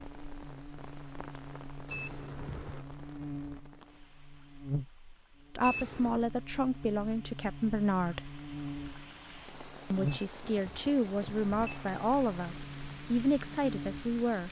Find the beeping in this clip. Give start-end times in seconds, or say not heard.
1.9-2.9, 5.6-6.2, 10.1-11.8.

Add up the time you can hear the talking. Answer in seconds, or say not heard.
7 s.